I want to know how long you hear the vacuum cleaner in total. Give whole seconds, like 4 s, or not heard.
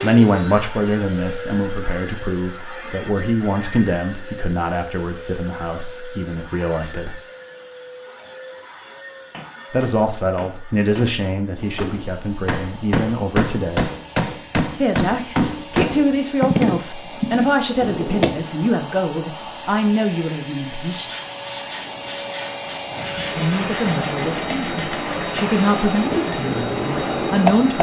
28 s.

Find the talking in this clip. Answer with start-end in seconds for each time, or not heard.
0.0-7.2, 9.7-13.9, 14.8-21.1, 23.4-27.7.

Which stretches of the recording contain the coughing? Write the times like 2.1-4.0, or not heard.
not heard.